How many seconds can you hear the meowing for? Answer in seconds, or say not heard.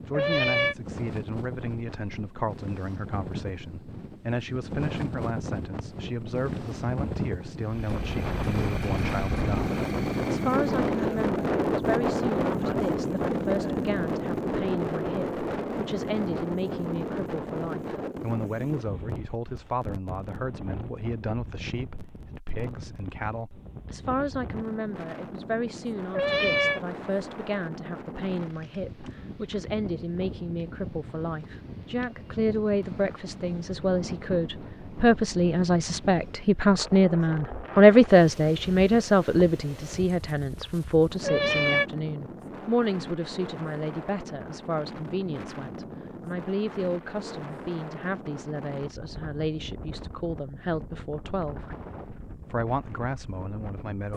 2 s.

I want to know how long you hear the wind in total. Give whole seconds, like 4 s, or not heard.
54 s.